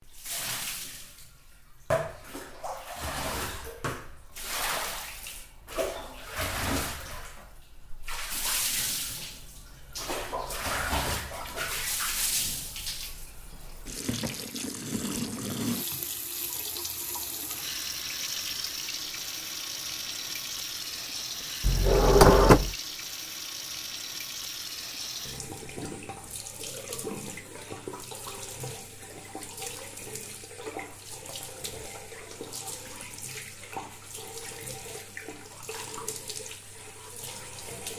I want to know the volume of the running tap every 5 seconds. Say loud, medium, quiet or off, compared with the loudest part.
loud, loud, loud, loud, loud, medium, medium, medium.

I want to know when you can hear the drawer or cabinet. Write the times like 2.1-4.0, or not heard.
21.6-22.8.